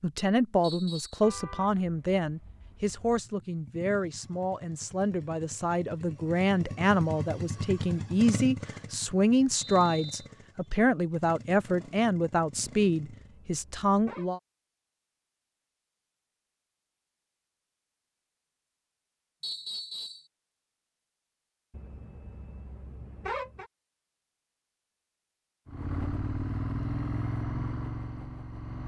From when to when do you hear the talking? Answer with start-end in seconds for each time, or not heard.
0.0-14.4.